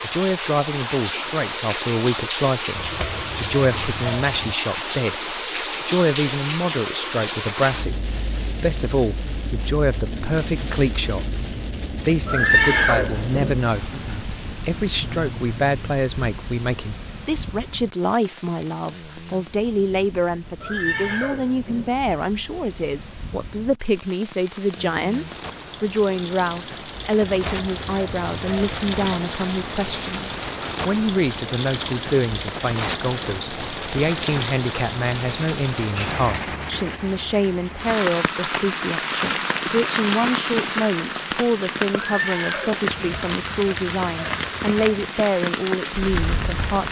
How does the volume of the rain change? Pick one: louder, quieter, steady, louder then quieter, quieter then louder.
quieter then louder.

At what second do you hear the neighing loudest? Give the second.
13 s.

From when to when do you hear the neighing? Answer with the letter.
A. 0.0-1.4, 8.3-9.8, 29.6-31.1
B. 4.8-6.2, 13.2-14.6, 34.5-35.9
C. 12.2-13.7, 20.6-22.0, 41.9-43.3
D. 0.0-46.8
C.